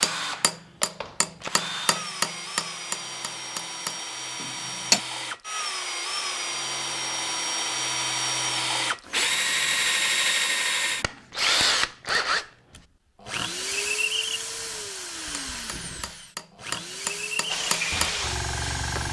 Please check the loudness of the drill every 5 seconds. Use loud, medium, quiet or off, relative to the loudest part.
medium, loud, loud, medium.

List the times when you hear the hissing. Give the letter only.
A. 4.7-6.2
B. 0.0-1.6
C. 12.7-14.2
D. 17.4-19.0
D.